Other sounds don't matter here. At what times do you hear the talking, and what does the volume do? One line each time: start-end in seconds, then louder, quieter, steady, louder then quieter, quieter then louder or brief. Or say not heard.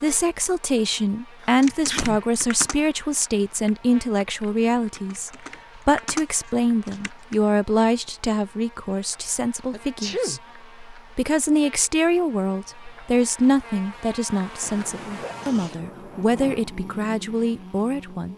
0.0-18.3 steady.